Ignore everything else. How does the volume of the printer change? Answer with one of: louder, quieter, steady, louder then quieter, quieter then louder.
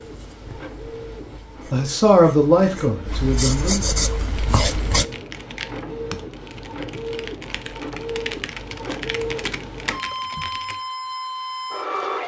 louder.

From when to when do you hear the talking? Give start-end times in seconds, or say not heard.
1.7-3.9.